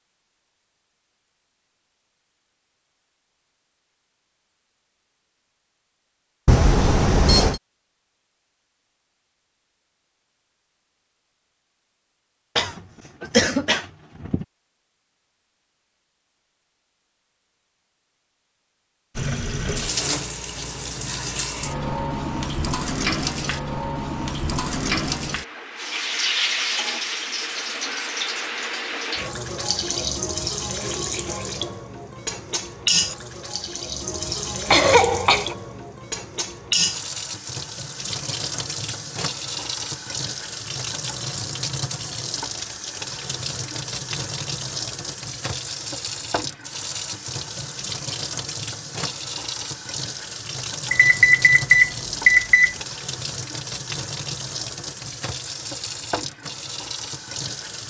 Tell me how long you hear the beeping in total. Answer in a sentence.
The beeping can be heard for 3 seconds in total.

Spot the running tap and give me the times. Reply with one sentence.
You can hear the running tap from 19.1 to 57.8 s.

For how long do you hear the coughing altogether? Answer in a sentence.
You can hear the coughing for 3 seconds altogether.